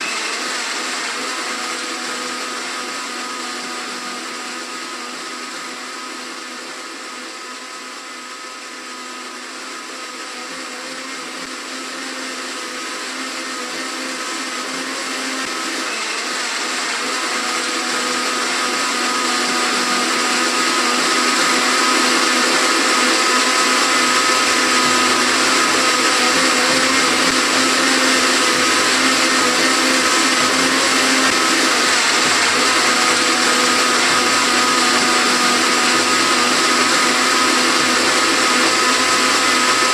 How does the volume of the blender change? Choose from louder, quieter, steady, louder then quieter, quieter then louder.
louder.